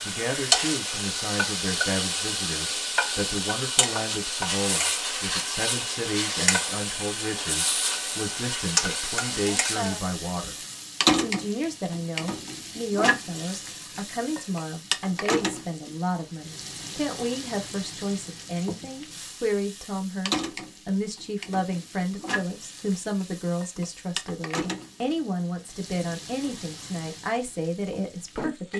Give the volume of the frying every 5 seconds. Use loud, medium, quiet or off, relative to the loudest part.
loud, loud, loud, medium, medium, quiet.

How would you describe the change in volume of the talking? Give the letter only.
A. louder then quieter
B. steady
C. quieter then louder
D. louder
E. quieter
B.